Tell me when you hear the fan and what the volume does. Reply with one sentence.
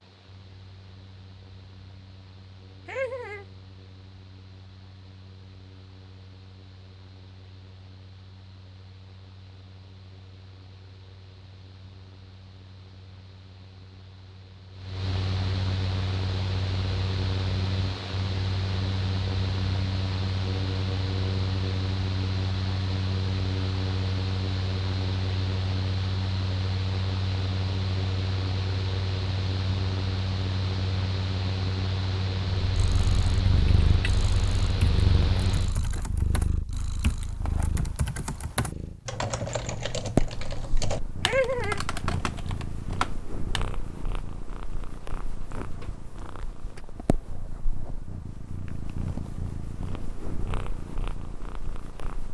You can hear the fan from 0.0 to 35.8 s, getting louder.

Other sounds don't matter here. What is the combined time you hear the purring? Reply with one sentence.
You can hear the purring for 20 seconds altogether.